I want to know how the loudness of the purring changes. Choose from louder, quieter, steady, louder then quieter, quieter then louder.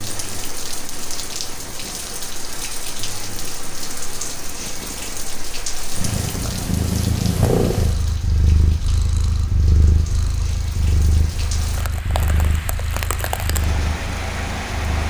louder then quieter.